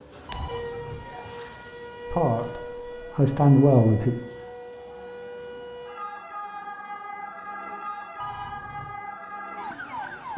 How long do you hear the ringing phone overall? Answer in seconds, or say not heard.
2 s.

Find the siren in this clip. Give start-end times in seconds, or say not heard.
0.0-10.3.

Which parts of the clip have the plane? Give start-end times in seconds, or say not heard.
not heard.